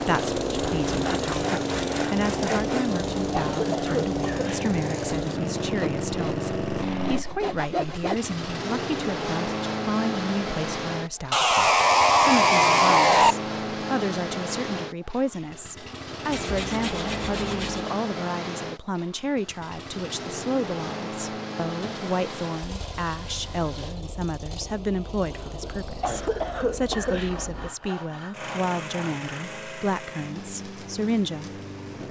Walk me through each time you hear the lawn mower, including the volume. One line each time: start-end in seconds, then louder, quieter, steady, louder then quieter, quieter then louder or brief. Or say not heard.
0.0-32.0 quieter.